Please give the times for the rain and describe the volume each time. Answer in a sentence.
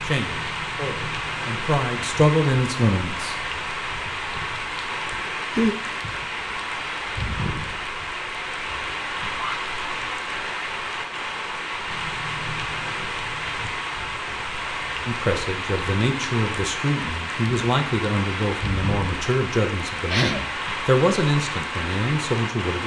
The rain can be heard from 0.0 to 22.8 s, at a steady volume.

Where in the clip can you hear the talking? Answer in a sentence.
You can hear the talking from 0.0 to 3.4 s and from 15.1 to 22.8 s.